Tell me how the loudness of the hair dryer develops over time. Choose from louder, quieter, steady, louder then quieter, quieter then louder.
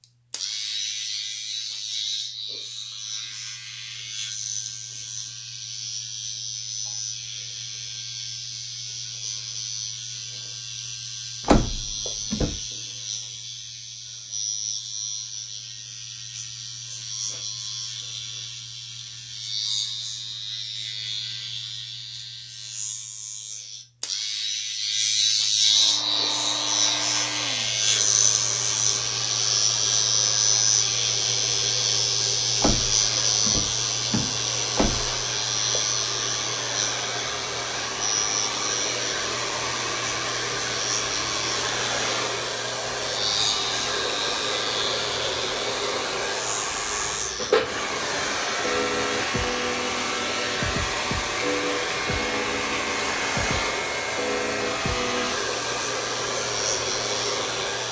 louder.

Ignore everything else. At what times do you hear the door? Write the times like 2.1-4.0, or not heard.
11.4-12.6, 32.6-35.1.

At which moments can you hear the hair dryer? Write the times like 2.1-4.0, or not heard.
25.6-57.8.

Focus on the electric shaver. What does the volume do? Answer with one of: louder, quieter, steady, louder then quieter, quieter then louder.
louder then quieter.